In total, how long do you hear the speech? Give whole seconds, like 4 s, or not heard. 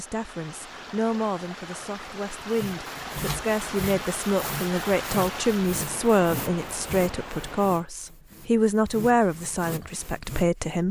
11 s.